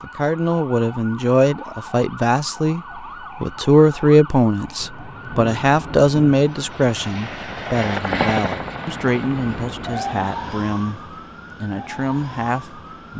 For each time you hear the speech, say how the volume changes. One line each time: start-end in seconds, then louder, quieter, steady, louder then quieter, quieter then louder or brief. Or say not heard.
0.0-2.8 brief
3.4-13.1 quieter.